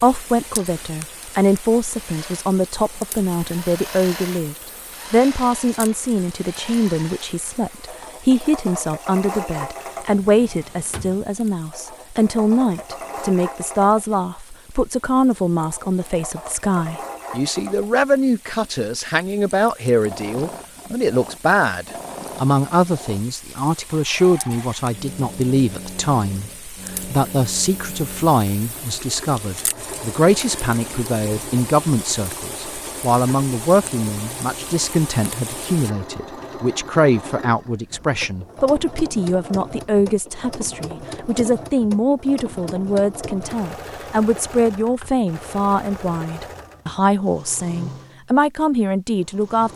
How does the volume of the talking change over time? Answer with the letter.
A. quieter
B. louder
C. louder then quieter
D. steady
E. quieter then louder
D.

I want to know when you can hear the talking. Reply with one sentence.
You can hear the talking from 0.0 to 49.7 s.